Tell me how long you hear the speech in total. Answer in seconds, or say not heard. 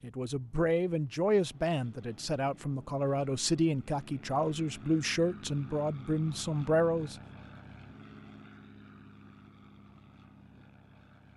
7 s.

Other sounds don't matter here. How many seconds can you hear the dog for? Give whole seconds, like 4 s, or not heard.
not heard.